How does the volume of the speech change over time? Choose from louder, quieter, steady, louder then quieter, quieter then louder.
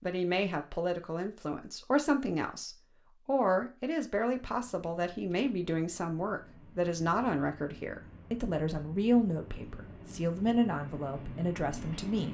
steady.